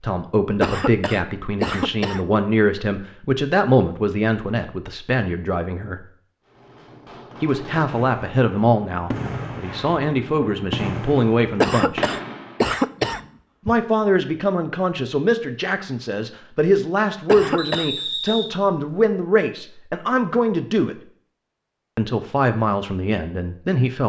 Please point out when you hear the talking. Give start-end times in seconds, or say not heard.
0.0-6.0, 7.4-12.1, 13.7-20.9, 21.9-24.0.